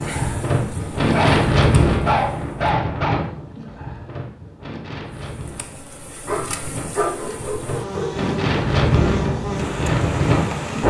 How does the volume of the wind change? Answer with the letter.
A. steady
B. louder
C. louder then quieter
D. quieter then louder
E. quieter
D.